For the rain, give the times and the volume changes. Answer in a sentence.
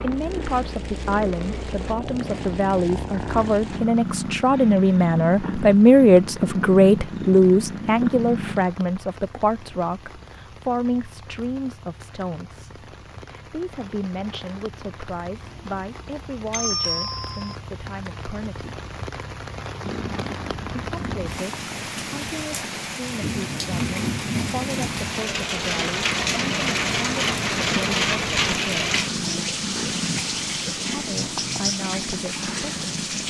The rain can be heard from 0.0 to 33.2 s, getting louder.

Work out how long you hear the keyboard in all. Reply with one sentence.
You can't hear the keyboard here.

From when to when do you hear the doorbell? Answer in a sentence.
You can hear the doorbell from 16.5 to 17.6 s.